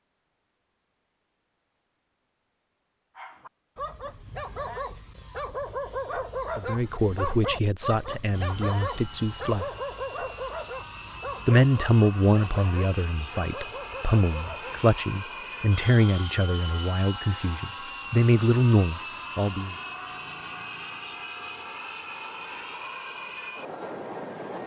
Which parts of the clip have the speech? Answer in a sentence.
You can hear the speech from 6.5 to 9.7 s and from 11.4 to 19.8 s.